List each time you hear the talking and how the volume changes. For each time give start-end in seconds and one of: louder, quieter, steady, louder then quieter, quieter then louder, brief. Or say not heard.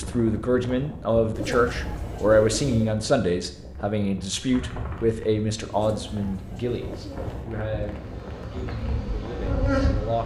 0.0-10.2 quieter.